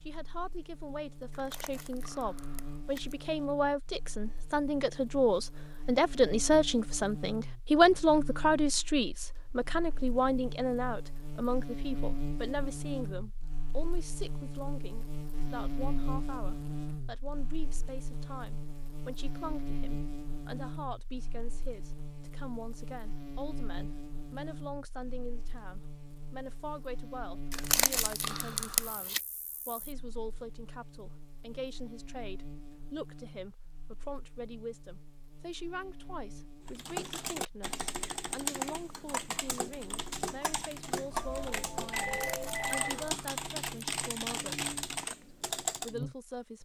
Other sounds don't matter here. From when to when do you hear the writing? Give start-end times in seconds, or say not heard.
not heard.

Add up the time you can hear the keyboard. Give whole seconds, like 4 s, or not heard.
9 s.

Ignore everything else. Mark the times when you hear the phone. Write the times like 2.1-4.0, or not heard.
41.1-43.1.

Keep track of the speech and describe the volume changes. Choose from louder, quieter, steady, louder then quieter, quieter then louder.
quieter.